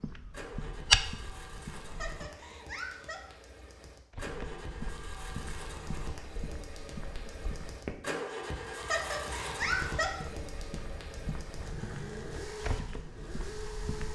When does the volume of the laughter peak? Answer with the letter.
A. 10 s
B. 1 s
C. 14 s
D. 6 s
A.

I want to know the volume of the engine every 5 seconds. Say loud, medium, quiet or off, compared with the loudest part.
medium, loud, loud.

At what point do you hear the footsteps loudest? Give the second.
1 s.